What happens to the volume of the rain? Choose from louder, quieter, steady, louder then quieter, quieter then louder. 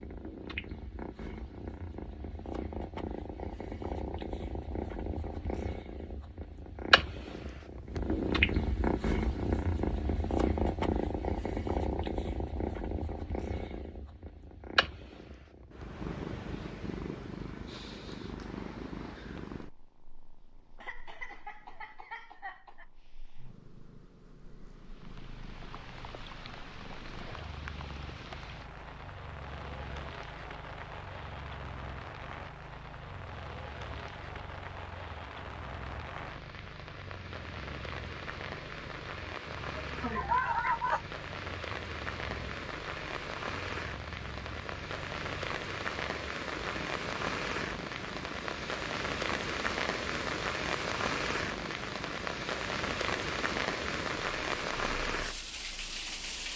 louder.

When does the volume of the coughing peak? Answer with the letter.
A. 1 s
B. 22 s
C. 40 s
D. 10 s
C.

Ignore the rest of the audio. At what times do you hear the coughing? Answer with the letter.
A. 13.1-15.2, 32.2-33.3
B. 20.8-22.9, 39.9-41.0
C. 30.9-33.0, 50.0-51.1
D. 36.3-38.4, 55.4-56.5
B.